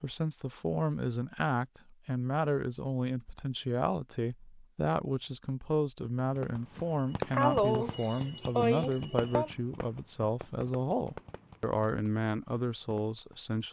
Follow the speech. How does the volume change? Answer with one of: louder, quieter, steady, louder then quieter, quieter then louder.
steady.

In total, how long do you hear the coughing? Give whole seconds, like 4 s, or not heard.
3 s.